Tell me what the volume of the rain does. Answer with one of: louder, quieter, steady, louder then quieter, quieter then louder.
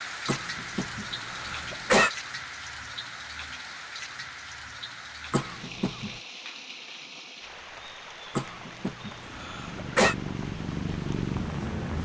quieter.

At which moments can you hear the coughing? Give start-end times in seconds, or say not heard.
0.2-2.1, 5.3-6.1, 8.3-10.2.